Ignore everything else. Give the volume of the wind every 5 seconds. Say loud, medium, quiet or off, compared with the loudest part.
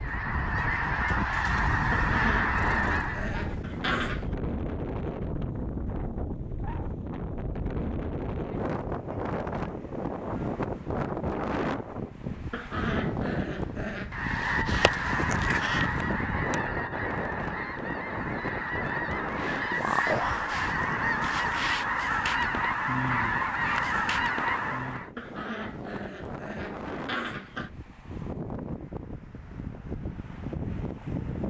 loud, loud, loud, loud, medium, medium, loud.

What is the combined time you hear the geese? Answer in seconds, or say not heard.
14 s.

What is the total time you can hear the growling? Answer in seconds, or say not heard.
7 s.